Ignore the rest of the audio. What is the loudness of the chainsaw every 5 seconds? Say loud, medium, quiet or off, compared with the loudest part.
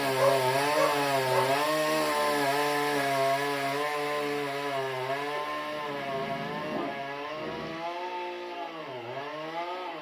loud, medium.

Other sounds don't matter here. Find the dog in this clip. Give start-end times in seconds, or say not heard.
0.1-1.5, 5.3-7.7.